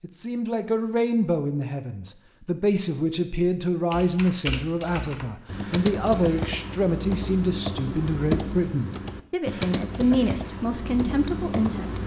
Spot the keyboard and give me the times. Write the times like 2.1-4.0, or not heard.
3.9-12.0.